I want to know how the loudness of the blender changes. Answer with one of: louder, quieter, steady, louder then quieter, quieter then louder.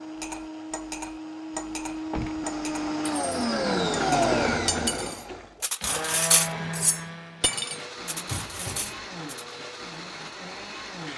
louder then quieter.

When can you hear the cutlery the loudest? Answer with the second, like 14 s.
6 s.